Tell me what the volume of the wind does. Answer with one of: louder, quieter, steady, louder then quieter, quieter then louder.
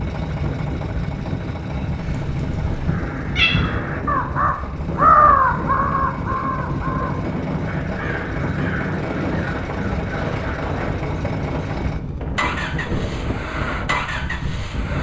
steady.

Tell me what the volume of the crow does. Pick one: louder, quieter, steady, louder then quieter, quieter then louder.
louder then quieter.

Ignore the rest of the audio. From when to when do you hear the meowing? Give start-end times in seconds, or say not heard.
1.9-3.5.